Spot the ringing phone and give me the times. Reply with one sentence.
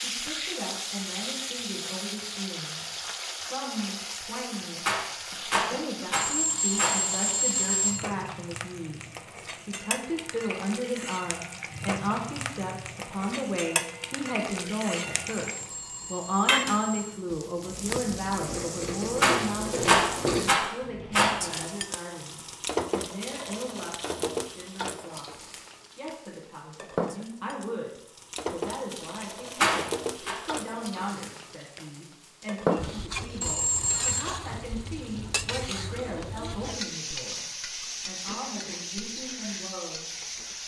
The ringing phone can be heard from 6.2 to 8.1 s, from 15.3 to 17.2 s and from 33.4 to 34.2 s.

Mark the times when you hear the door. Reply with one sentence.
You can't hear the door here.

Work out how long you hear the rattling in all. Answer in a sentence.
The rattling can be heard for 5 seconds in total.